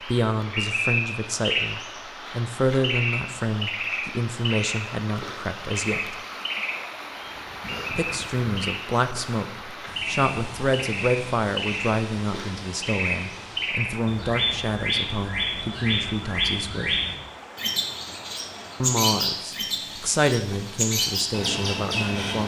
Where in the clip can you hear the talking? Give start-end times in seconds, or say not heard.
0.1-6.2, 7.9-16.9, 18.8-22.4.